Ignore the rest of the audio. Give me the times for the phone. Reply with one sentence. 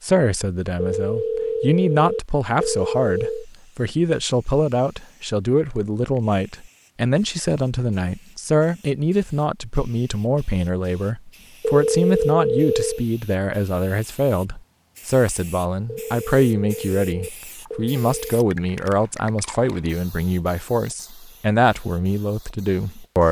You can hear the phone from 0.8 to 3.5 s, from 11.7 to 13.1 s and from 15.8 to 18.2 s.